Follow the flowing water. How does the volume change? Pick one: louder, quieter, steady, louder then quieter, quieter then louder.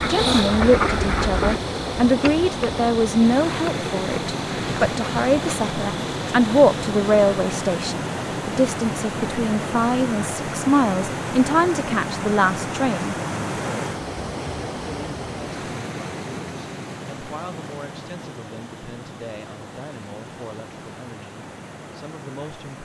quieter.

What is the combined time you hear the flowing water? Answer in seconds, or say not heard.
23 s.